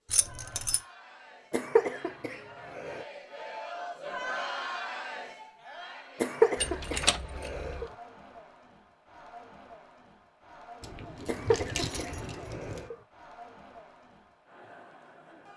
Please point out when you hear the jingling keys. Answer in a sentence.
The jingling keys can be heard from 0.1 to 0.8 s, from 6.5 to 7.8 s and from 10.8 to 12.9 s.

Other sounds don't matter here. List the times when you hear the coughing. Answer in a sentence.
The coughing can be heard from 1.5 to 3.0 s, from 6.2 to 7.8 s and from 11.2 to 12.9 s.